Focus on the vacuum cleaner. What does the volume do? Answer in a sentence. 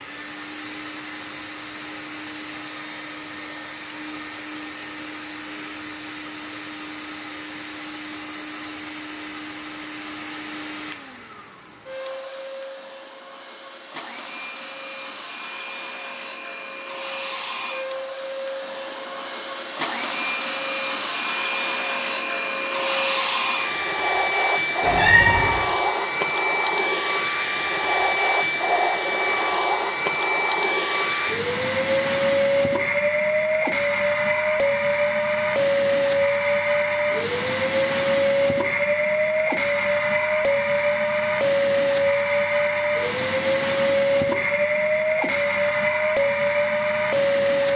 The loudness of the vacuum cleaner goes up.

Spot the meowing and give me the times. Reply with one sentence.
The meowing can be heard from 24.8 to 25.5 s.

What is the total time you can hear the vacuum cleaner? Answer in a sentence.
You can hear the vacuum cleaner for 48 seconds altogether.